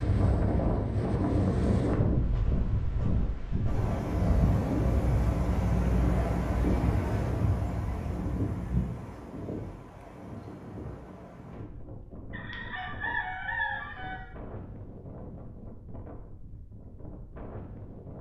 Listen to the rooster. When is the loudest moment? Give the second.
14 s.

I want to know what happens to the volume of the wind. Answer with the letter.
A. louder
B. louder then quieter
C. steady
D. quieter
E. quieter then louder
D.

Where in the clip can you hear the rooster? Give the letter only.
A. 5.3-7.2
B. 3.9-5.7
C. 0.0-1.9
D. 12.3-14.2
D.